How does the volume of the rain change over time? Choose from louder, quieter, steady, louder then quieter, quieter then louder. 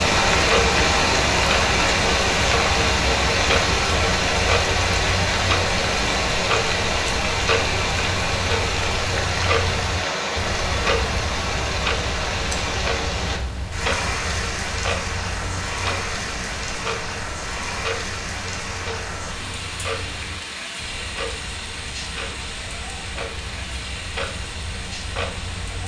quieter.